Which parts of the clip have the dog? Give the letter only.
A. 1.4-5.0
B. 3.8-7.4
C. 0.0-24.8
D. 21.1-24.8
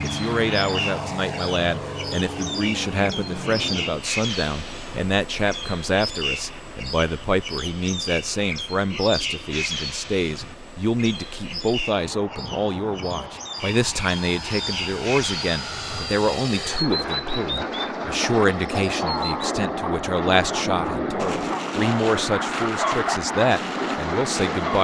D.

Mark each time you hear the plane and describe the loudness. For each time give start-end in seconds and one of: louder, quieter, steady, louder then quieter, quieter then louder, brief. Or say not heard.
0.0-24.8 quieter then louder.